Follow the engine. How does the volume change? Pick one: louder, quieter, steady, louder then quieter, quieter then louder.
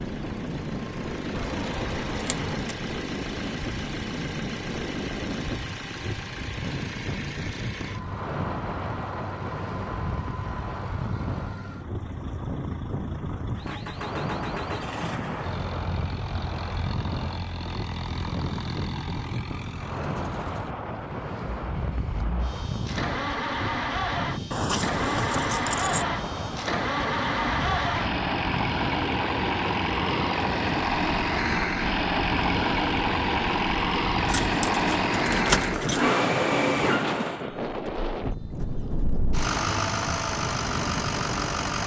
louder.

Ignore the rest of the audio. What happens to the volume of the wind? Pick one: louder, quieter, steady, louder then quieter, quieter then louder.
steady.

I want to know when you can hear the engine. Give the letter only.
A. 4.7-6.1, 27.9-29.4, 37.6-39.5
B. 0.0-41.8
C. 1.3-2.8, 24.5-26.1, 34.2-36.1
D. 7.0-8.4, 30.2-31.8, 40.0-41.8
B.